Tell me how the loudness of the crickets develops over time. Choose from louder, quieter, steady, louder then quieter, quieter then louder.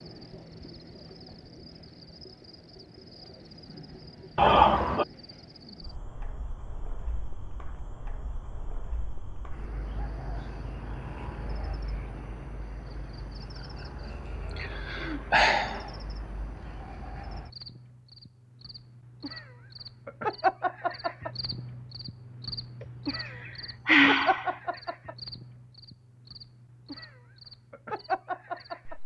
louder.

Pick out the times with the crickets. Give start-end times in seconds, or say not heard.
0.0-29.0.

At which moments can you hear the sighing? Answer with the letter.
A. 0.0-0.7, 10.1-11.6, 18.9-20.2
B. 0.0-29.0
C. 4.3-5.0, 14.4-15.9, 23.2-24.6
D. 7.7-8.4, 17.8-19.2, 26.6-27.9
C.